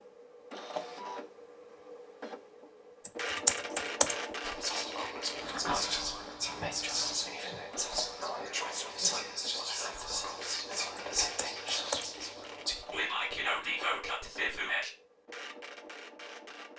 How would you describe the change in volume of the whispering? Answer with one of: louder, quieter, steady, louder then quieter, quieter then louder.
steady.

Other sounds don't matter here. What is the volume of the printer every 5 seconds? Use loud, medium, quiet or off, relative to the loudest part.
loud, loud, medium, medium.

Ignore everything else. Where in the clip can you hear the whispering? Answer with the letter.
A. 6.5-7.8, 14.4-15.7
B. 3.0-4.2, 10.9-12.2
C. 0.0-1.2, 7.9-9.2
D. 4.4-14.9
D.